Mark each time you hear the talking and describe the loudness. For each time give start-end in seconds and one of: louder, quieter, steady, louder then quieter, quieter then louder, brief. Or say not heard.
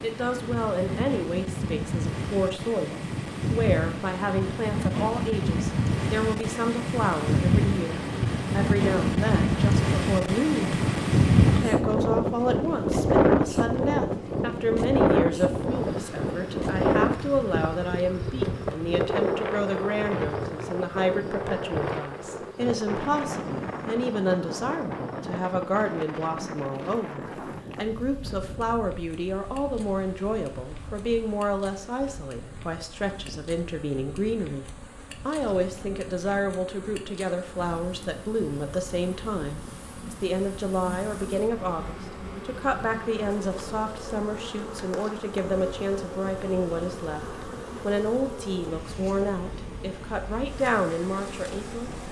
0.0-51.9 steady.